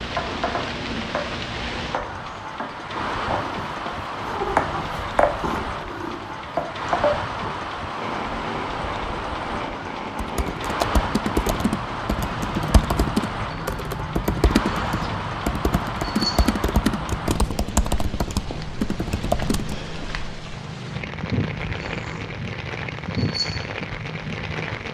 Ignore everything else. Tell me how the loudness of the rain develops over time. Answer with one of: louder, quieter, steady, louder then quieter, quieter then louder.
steady.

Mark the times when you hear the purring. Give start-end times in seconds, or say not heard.
0.0-24.8.